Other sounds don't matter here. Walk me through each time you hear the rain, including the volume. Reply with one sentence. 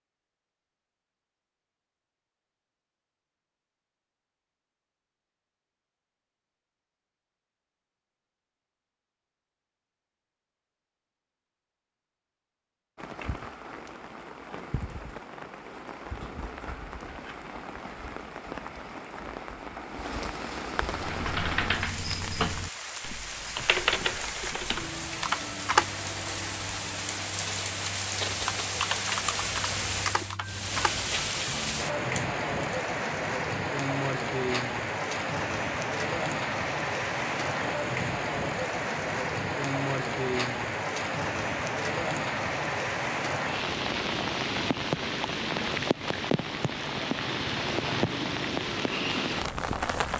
You can hear the rain from 12.9 to 50.1 s, getting louder.